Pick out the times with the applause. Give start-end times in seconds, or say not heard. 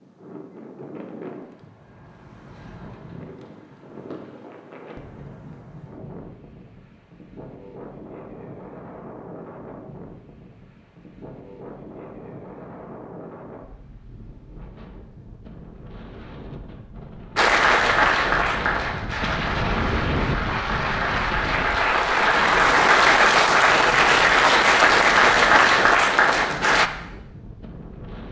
17.4-26.9.